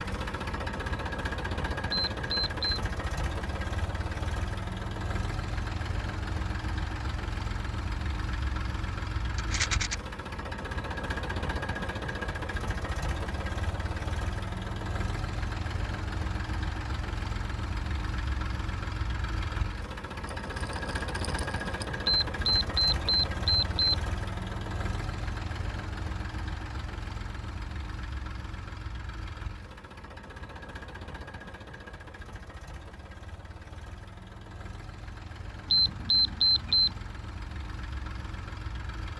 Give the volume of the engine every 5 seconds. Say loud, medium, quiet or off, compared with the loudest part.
loud, loud, loud, loud, loud, medium, medium, medium.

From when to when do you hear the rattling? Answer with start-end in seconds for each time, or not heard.
9.3-9.9, 20.2-21.9.